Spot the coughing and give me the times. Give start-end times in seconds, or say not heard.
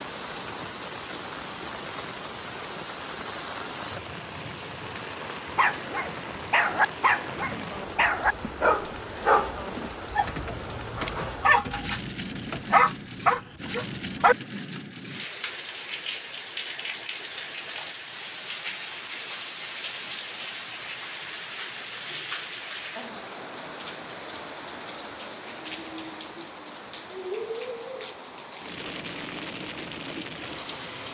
not heard.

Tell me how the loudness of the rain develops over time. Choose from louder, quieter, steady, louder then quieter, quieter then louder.
steady.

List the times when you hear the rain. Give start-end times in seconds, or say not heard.
0.0-31.1.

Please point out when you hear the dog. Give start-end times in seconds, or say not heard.
5.5-14.3.